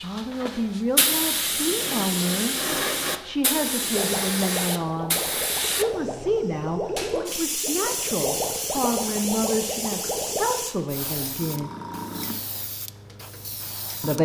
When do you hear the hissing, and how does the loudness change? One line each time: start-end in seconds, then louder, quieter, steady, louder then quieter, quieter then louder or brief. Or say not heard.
0.0-14.2 quieter.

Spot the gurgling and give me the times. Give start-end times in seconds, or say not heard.
3.9-10.7.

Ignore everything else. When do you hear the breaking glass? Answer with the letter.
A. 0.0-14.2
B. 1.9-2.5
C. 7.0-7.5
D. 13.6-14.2
C.